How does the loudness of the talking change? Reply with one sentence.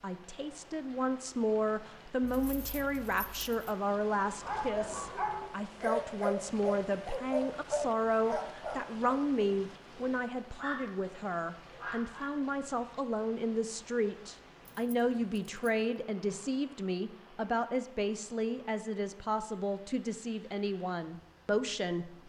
The loudness of the talking stays about the same.